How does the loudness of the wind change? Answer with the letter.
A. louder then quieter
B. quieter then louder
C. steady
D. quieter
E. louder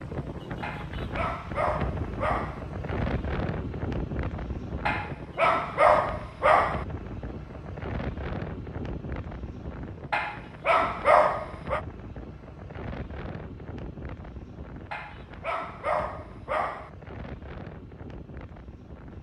D.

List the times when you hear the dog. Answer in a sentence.
You can hear the dog from 0.6 to 2.6 s, from 4.8 to 6.8 s, from 10.1 to 11.8 s and from 14.9 to 16.9 s.